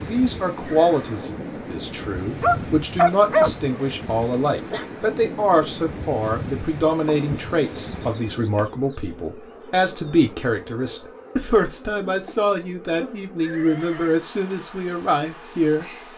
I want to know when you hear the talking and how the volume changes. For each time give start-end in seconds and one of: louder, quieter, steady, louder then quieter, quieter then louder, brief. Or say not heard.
0.0-15.9 steady.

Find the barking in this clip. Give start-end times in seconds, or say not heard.
2.4-4.8.